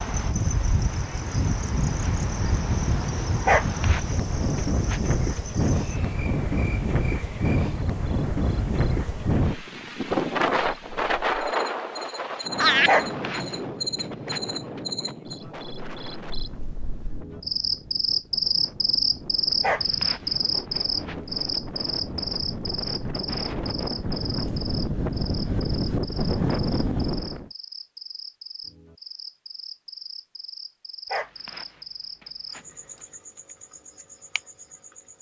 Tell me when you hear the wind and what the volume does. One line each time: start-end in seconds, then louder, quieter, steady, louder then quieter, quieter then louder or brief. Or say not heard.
0.0-27.5 quieter then louder.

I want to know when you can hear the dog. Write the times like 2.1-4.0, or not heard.
3.5-5.0, 12.8-14.4, 19.6-21.1, 31.1-32.6.